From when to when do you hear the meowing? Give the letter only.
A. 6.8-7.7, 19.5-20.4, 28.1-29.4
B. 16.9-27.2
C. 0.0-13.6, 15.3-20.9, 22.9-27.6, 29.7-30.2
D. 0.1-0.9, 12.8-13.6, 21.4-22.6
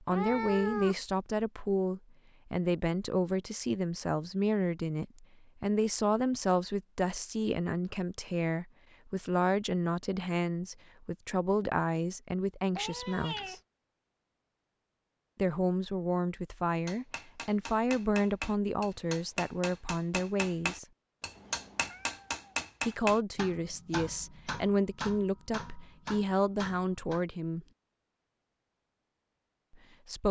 D.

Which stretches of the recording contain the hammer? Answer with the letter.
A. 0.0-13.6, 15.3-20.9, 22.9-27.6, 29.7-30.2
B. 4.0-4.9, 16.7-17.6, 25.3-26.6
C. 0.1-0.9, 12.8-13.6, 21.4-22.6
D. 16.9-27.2
D.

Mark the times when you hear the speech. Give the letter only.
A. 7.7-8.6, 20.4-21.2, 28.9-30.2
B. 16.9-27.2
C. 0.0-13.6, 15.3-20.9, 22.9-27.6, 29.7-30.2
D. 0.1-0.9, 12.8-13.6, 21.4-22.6
C.